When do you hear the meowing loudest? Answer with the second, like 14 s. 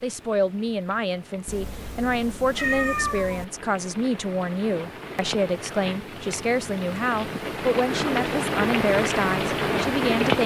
3 s.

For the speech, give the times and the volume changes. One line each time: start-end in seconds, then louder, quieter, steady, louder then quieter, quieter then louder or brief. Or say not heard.
0.0-10.4 steady.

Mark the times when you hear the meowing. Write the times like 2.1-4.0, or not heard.
1.4-3.5.